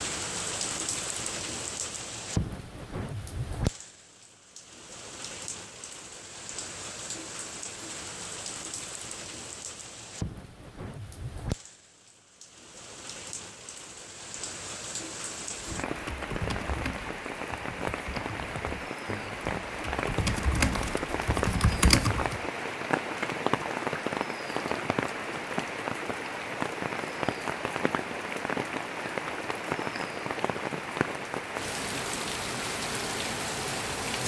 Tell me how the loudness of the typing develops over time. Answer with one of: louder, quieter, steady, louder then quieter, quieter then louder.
quieter then louder.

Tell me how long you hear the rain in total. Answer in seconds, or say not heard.
34 s.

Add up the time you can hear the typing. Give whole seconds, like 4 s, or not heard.
7 s.